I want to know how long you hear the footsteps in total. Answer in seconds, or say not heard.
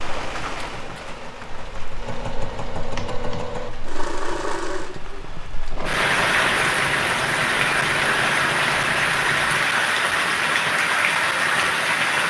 not heard.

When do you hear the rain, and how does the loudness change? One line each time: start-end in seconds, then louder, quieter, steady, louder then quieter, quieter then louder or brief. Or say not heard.
0.0-12.2 quieter then louder.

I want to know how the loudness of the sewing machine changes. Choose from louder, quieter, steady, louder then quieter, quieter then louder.
louder.